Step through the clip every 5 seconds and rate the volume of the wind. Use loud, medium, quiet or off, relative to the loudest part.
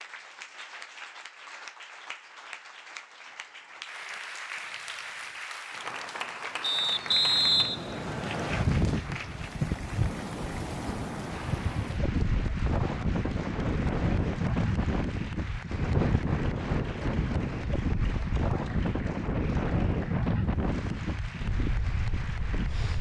off, loud, loud, loud, loud.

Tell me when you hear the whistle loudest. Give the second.
7 s.